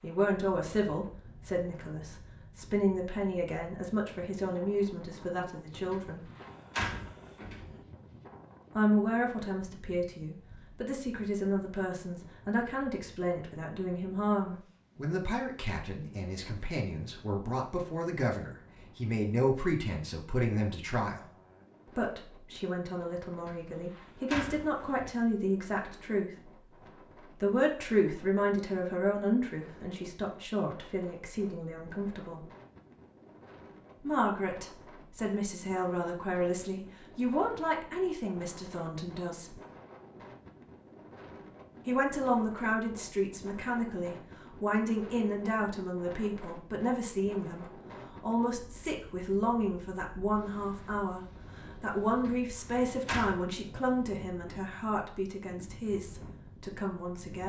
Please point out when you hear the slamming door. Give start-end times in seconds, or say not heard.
5.9-7.8, 23.4-25.1, 52.2-53.4.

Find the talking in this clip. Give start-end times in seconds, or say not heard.
0.0-6.2, 8.8-21.2, 21.9-26.5, 27.4-32.5, 34.0-39.5, 41.9-57.4.